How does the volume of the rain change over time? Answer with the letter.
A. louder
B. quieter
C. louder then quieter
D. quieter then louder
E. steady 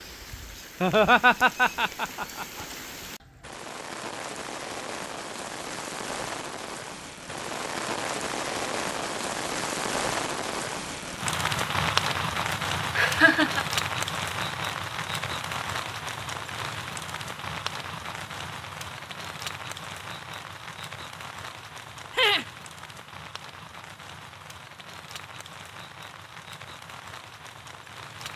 C.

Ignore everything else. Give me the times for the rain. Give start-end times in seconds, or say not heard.
0.0-28.3.